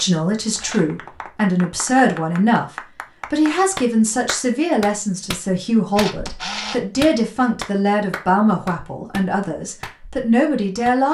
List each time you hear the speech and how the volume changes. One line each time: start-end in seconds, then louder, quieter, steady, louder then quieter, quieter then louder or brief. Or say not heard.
0.0-2.7 brief
3.3-11.1 steady.